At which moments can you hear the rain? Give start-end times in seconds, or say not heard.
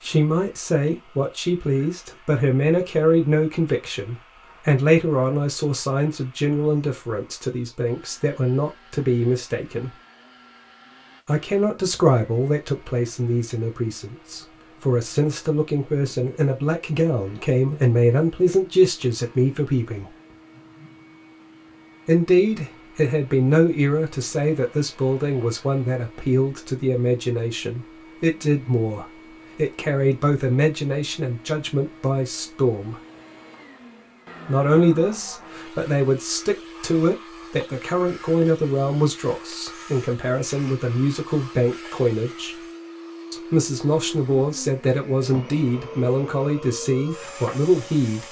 not heard.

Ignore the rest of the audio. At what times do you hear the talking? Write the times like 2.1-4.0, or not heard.
0.0-9.9, 11.2-20.1, 22.1-33.0, 34.5-42.6, 43.3-48.2.